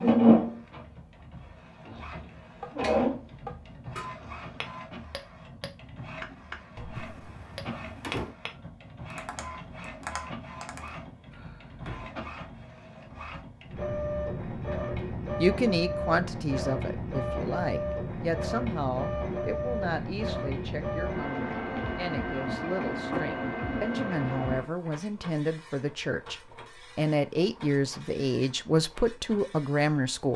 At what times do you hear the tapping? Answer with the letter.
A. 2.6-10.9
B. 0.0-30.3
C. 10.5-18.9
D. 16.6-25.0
A.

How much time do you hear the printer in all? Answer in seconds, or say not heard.
30 s.